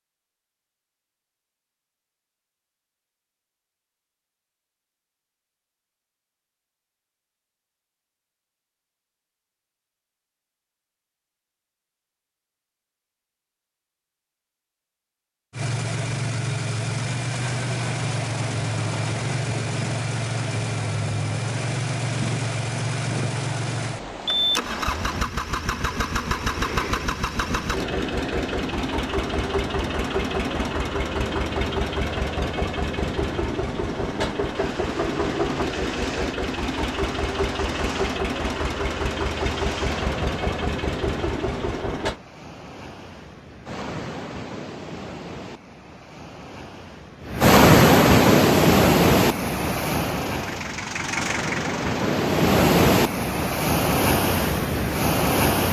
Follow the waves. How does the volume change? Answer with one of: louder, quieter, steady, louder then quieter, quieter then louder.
louder.